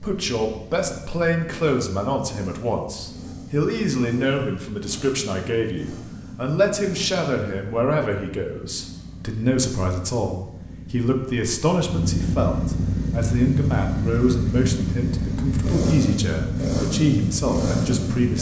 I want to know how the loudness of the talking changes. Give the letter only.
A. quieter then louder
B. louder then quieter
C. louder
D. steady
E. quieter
D.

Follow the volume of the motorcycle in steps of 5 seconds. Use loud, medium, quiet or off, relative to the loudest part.
quiet, quiet, loud, loud.